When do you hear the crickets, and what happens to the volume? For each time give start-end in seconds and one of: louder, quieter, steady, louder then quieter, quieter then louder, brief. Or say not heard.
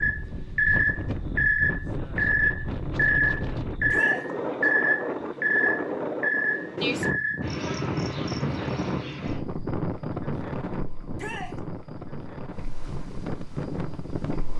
0.0-14.5 quieter.